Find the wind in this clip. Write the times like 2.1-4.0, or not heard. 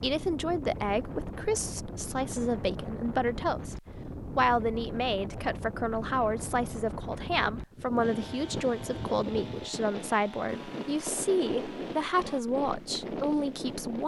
0.0-14.0.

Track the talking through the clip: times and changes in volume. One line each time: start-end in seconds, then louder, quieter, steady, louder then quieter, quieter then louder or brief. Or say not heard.
0.0-14.0 steady.